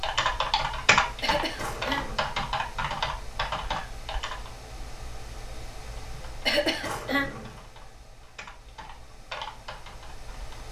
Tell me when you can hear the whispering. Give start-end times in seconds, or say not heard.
not heard.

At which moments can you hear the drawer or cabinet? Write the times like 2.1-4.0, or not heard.
1.6-2.4, 6.8-7.7.